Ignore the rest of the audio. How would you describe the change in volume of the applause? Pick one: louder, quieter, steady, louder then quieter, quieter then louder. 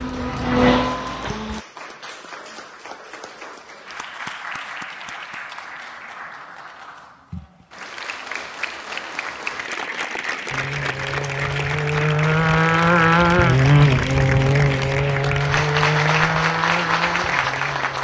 louder.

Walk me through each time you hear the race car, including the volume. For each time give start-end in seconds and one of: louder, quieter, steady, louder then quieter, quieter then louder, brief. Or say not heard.
0.0-1.6 brief
10.5-18.0 louder then quieter.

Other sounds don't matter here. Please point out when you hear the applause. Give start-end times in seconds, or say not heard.
0.0-18.0.